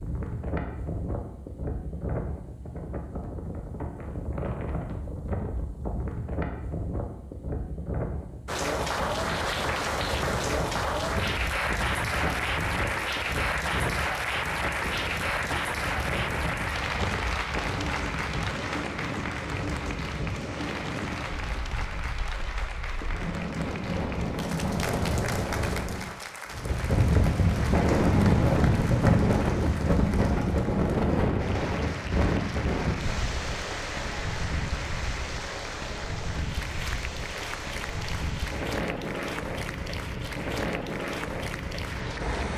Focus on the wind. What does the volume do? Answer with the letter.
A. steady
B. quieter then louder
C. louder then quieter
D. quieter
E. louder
C.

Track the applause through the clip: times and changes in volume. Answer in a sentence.
You can hear the applause from 8.4 to 42.5 s, getting quieter.